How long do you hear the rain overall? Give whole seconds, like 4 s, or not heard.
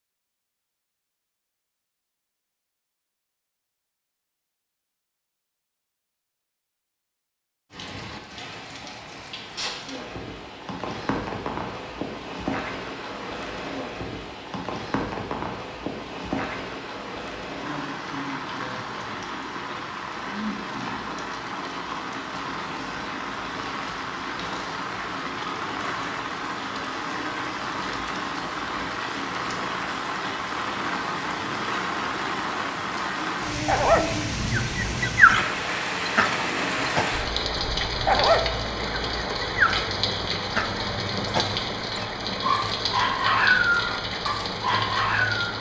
38 s.